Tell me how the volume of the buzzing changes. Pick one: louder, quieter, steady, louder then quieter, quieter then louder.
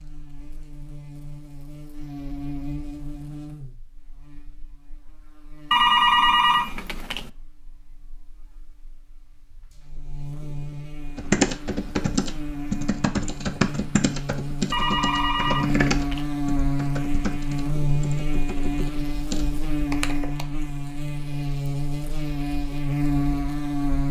quieter then louder.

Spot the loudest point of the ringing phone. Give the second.
6 s.